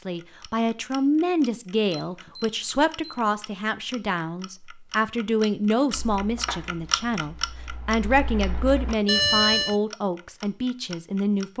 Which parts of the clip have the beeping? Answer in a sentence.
You can hear the beeping from 2.0 to 3.5 s and from 9.1 to 9.8 s.